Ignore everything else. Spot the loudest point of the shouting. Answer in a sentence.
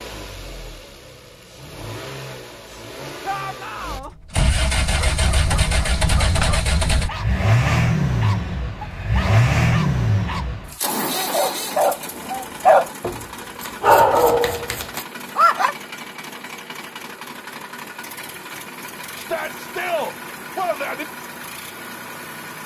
The volume of the shouting peaks at 20 seconds.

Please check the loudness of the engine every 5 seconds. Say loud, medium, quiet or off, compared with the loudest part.
medium, loud, medium, quiet, quiet.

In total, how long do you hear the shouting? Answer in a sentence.
You can hear the shouting for 3 seconds altogether.